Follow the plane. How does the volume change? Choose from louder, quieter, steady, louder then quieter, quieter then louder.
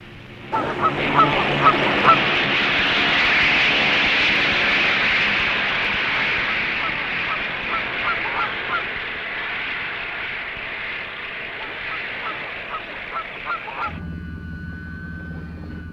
quieter.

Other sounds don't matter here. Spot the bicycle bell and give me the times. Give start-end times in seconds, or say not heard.
not heard.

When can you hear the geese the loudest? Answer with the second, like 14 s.
2 s.